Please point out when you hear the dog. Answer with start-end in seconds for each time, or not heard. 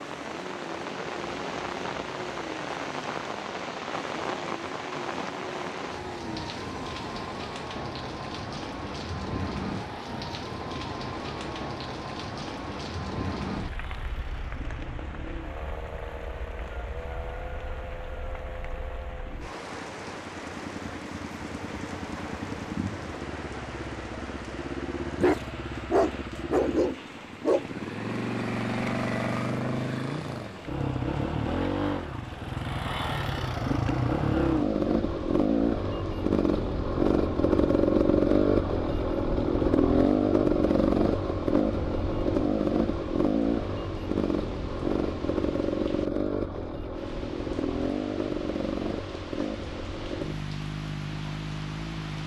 25.2-27.6.